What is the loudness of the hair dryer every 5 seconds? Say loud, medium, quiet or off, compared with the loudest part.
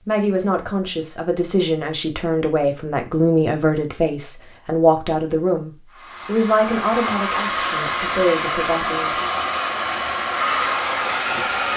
off, loud, loud.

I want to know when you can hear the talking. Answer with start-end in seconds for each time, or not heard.
0.1-9.3.